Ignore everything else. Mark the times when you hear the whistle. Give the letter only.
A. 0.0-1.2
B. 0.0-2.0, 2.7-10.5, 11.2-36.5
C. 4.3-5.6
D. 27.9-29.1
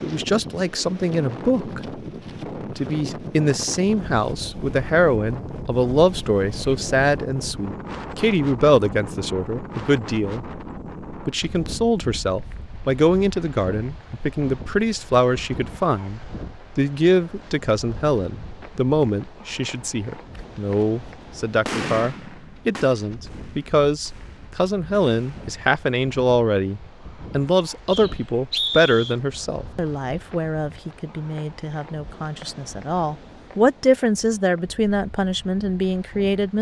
D.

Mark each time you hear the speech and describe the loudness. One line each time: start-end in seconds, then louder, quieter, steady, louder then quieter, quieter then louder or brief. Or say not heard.
0.0-2.0 brief
2.7-10.5 steady
11.2-36.5 steady.